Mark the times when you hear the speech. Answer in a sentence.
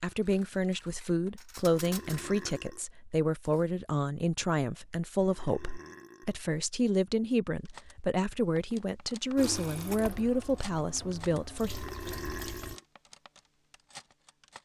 The speech can be heard from 0.0 to 11.8 s.